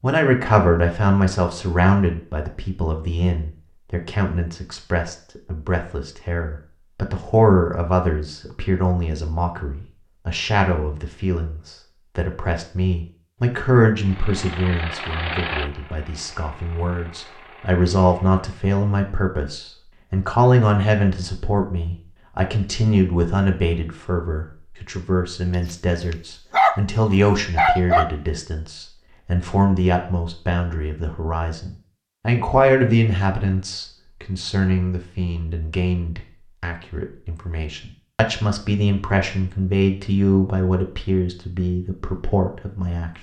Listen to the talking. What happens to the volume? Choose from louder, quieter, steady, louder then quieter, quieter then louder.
steady.